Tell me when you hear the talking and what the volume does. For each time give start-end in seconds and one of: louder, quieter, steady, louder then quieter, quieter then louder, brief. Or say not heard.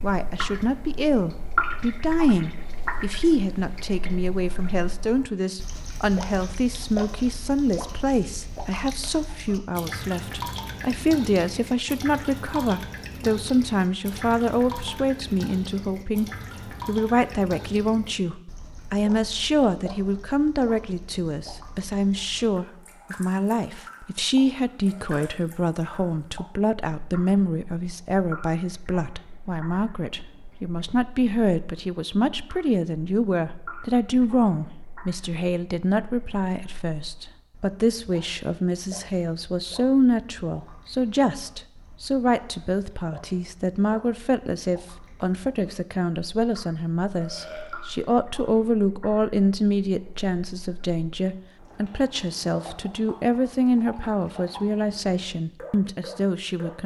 0.0-56.8 steady.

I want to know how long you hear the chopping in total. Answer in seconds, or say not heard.
not heard.